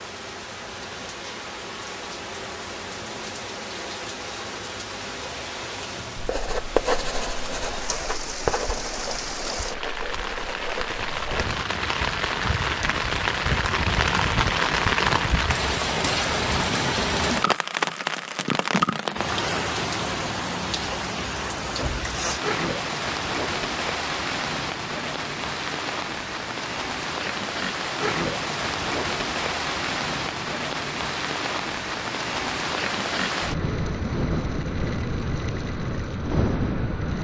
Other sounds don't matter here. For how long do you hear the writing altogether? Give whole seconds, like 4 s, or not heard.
5 s.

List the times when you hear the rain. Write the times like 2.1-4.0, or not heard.
0.0-37.1.